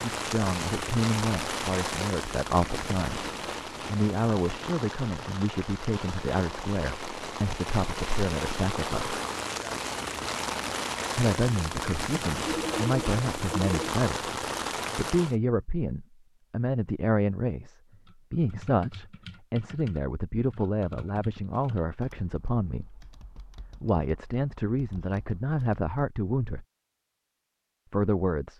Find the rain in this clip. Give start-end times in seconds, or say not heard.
0.0-15.3.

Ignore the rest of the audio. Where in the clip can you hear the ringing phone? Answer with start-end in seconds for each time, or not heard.
12.4-13.9.